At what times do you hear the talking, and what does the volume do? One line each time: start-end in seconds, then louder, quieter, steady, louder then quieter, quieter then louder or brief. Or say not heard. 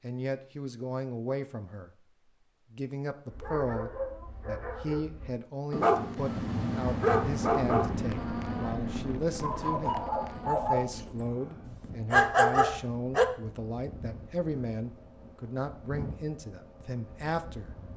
0.0-1.9 brief
2.7-17.8 steady.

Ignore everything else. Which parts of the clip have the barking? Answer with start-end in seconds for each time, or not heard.
3.3-10.9, 11.7-13.2.